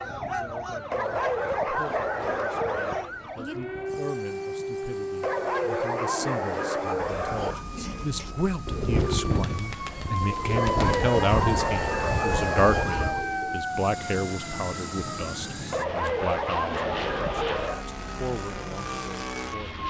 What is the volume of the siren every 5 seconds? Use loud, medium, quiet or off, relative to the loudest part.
loud, medium, loud, medium.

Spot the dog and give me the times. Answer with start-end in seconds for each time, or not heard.
0.9-3.1, 5.2-7.7, 10.6-13.2, 15.7-17.9.